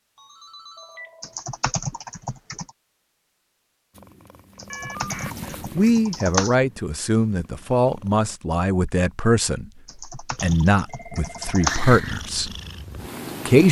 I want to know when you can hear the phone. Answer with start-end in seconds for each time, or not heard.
0.1-1.4, 4.7-5.3, 10.8-11.7.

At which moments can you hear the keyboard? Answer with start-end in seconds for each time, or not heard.
1.2-2.7, 4.5-6.5, 9.8-11.8.